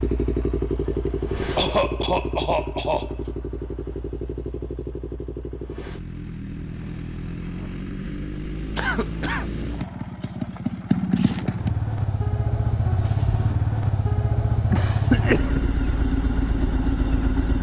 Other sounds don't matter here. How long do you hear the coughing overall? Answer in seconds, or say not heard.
3 s.